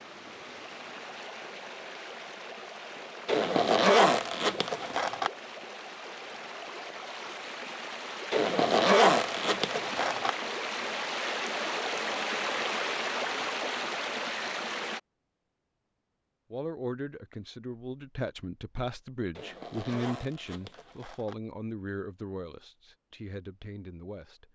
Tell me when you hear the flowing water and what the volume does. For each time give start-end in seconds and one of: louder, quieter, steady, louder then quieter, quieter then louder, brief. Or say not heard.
0.0-15.0 louder.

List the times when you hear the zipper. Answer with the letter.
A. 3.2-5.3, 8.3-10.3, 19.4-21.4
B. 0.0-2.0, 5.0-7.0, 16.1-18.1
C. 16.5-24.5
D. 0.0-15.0
A.